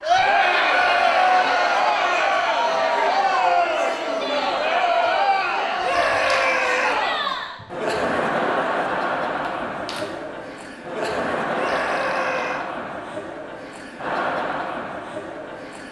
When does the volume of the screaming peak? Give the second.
6 s.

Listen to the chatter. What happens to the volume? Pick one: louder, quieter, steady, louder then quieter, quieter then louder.
quieter.